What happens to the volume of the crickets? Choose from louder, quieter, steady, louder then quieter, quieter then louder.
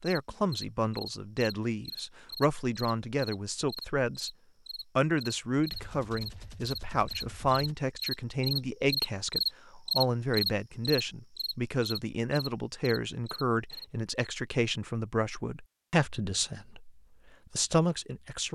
louder then quieter.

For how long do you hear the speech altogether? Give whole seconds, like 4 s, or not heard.
18 s.